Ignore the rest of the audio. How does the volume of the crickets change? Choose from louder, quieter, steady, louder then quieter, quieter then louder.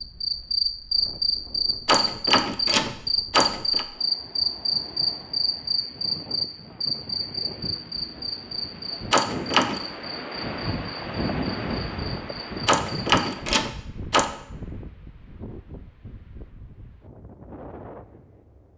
quieter.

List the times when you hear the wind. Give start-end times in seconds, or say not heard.
0.0-18.7.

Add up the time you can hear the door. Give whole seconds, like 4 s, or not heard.
4 s.